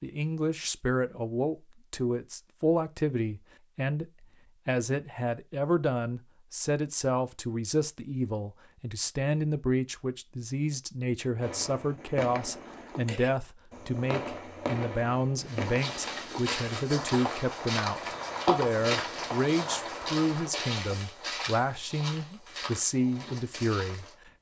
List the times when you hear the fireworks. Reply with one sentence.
The fireworks can be heard from 11.4 to 20.5 s.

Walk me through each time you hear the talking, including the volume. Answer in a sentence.
You can hear the talking from 0.0 to 24.3 s, at a steady volume.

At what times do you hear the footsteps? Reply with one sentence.
The footsteps can be heard from 15.4 to 24.1 s.